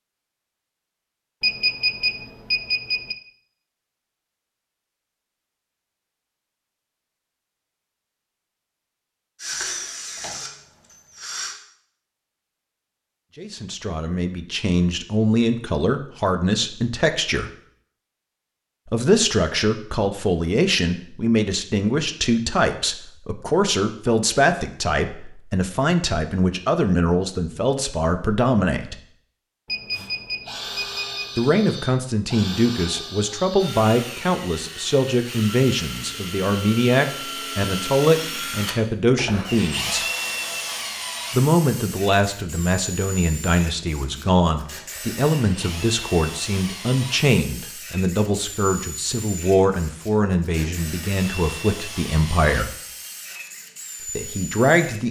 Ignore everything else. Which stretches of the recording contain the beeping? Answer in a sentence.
The beeping can be heard from 1.4 to 3.1 s and from 29.6 to 31.4 s.